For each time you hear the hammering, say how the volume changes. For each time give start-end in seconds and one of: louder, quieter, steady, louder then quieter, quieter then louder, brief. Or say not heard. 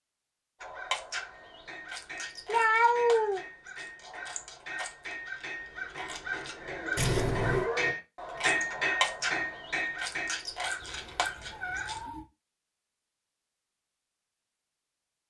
1.4-10.4 louder.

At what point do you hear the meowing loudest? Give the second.
3 s.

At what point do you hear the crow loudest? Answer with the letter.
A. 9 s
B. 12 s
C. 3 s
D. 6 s
A.